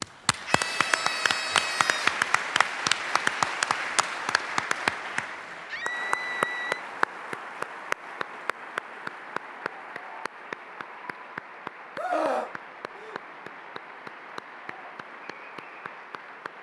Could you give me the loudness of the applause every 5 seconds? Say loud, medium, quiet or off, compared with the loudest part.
loud, medium, quiet, quiet.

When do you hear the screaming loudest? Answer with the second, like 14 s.
12 s.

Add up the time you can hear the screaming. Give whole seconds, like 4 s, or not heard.
4 s.